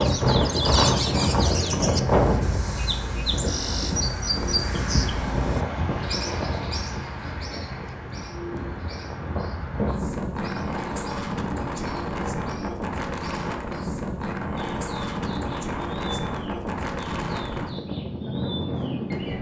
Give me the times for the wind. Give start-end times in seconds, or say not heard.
0.0-19.3.